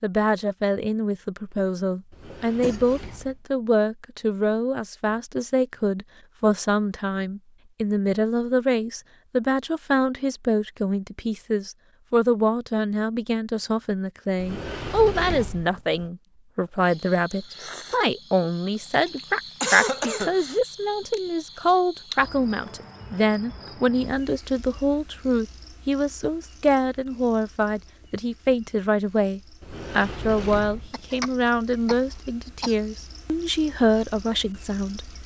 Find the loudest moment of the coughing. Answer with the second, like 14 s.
20 s.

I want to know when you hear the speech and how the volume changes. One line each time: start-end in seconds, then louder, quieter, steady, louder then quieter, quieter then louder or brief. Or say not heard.
0.0-35.1 steady.